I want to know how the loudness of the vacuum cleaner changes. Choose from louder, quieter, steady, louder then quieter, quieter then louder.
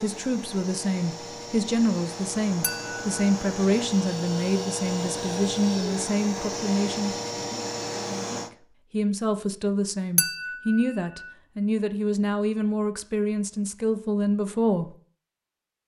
louder.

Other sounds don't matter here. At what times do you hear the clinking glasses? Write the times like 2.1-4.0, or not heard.
2.6-3.0, 10.2-10.8.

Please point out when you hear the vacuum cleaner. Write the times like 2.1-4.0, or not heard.
0.0-8.5.